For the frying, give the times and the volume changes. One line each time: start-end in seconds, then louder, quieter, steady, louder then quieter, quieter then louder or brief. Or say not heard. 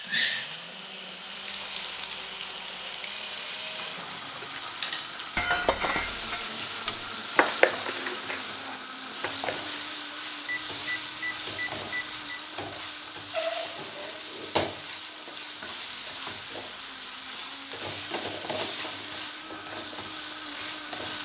0.0-21.1 steady.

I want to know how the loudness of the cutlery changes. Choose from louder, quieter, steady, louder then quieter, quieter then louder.
louder then quieter.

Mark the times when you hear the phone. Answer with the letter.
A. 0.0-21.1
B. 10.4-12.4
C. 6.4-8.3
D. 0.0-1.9
B.